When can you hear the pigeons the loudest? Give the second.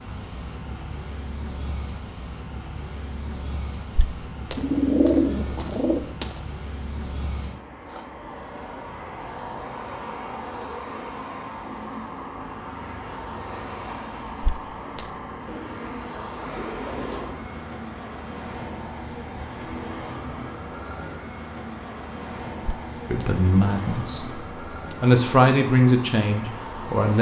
5 s.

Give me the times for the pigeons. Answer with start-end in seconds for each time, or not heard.
4.5-6.0, 15.4-17.5.